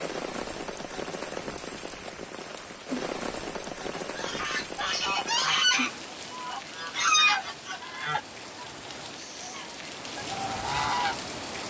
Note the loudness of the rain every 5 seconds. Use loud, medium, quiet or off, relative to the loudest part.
loud, medium, loud.